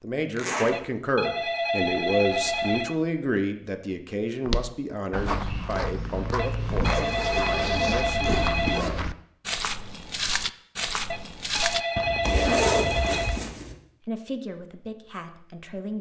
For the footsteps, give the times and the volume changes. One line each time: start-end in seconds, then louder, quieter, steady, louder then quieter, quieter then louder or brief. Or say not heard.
4.5-13.4 steady.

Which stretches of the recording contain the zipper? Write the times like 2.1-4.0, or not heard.
0.3-0.8, 6.9-8.9, 12.2-13.8.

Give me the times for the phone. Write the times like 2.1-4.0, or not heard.
0.7-3.0, 6.3-8.8, 11.1-13.4.